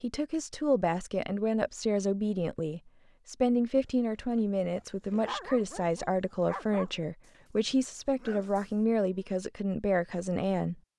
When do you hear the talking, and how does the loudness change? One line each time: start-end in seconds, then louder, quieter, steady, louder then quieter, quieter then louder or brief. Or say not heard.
0.0-10.8 steady.